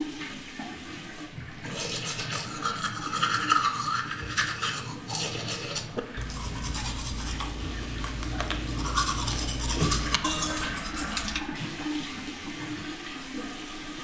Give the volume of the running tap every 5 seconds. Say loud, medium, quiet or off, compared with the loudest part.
medium, loud, loud.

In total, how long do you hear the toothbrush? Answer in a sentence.
The toothbrush can be heard for 10 seconds in total.